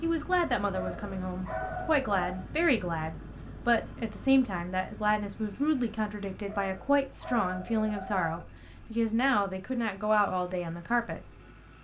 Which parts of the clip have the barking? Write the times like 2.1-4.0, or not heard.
0.7-2.5, 6.5-8.4.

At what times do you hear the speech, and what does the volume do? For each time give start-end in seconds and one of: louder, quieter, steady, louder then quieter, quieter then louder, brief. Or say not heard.
0.0-11.2 steady.